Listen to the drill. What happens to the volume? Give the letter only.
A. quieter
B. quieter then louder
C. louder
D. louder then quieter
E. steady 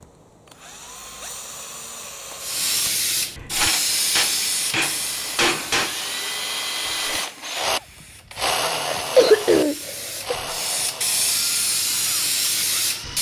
D.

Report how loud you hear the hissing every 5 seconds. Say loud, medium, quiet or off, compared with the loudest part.
loud, quiet, loud.